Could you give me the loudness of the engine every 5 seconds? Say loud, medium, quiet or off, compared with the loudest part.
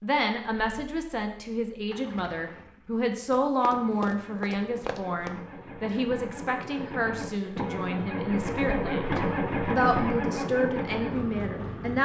quiet, loud, loud.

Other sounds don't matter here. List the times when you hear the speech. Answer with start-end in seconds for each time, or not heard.
0.0-12.0.